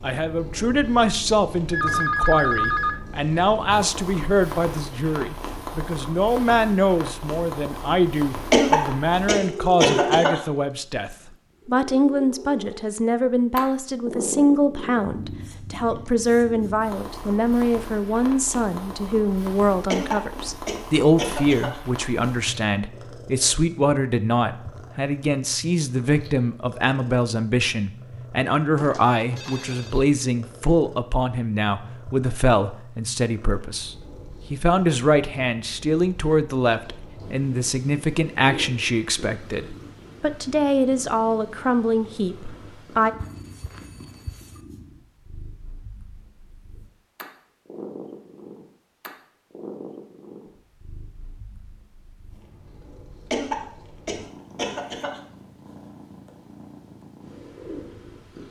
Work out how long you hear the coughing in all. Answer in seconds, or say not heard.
6 s.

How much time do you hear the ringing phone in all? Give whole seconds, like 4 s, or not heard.
4 s.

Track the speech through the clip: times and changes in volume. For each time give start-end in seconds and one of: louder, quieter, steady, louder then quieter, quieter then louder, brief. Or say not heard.
0.0-43.1 steady.